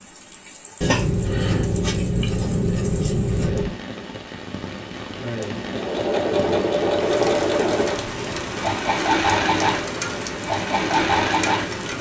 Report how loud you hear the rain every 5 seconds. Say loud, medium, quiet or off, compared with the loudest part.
medium, loud, loud.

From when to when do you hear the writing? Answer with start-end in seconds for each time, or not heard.
0.8-3.8.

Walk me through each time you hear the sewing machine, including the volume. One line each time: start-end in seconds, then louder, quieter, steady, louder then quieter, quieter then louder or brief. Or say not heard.
5.6-11.7 steady.